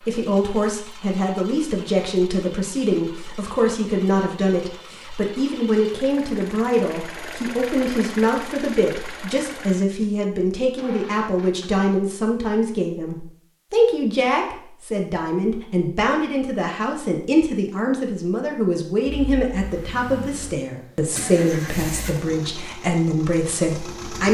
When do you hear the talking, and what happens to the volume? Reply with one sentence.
You can hear the talking from 0.1 to 24.3 s, at a steady volume.